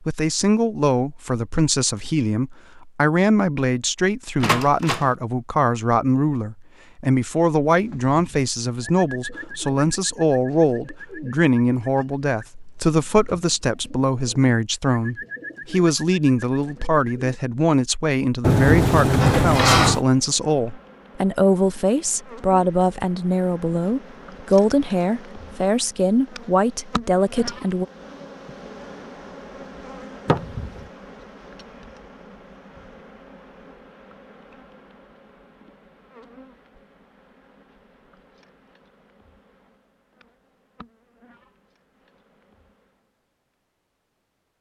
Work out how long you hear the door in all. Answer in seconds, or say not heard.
3 s.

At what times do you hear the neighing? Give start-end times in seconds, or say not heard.
not heard.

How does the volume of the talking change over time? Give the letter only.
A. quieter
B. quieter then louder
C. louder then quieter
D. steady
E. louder
D.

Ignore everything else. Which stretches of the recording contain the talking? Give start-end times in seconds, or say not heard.
0.0-27.9.